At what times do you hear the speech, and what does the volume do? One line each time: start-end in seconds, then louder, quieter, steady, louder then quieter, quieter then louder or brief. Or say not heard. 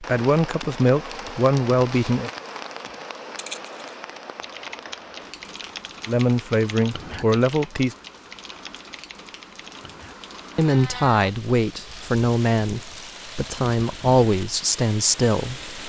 0.0-2.3 brief
6.0-8.0 brief
10.6-15.8 quieter then louder.